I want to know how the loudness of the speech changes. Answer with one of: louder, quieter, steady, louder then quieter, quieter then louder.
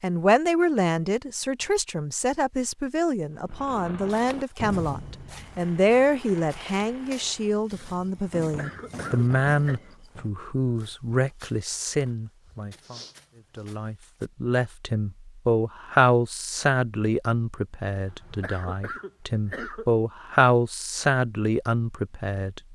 steady.